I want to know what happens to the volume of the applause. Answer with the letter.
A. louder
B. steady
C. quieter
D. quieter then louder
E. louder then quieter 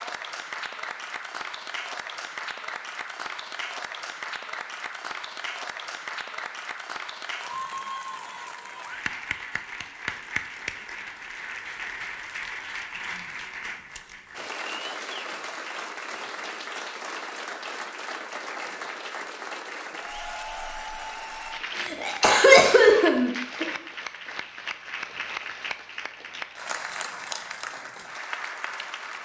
B.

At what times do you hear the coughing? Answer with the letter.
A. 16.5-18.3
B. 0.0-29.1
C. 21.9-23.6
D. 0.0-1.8
C.